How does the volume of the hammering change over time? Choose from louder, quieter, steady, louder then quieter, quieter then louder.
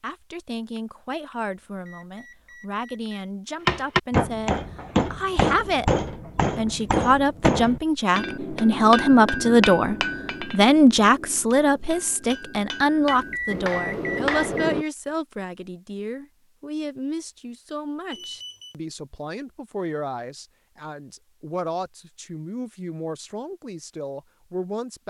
quieter then louder.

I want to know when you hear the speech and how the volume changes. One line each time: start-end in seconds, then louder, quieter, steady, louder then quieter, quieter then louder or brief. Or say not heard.
0.0-25.0 louder then quieter.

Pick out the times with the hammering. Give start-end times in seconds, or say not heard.
3.6-14.8.